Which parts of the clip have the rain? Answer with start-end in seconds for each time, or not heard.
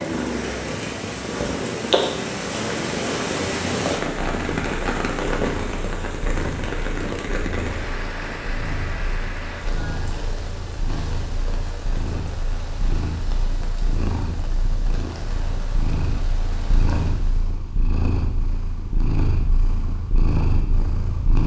0.0-17.5.